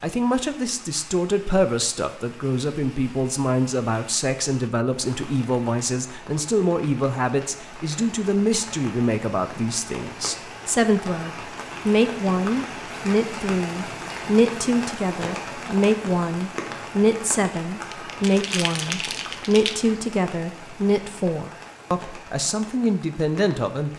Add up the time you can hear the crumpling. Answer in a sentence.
You can hear the crumpling for 2 seconds altogether.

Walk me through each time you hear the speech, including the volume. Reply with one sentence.
The speech can be heard from 0.0 to 23.9 s, at a steady volume.